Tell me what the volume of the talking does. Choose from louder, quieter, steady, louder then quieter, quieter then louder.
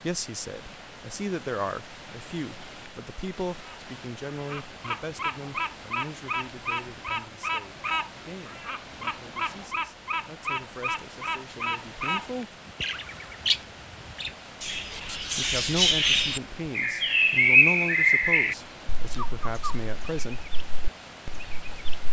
quieter then louder.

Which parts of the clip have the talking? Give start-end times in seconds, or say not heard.
0.0-12.6, 15.2-20.4.